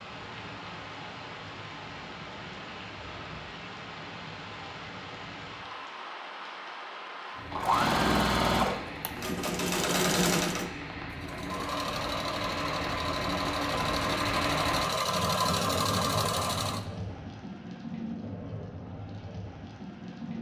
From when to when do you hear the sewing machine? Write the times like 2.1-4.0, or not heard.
7.5-16.9.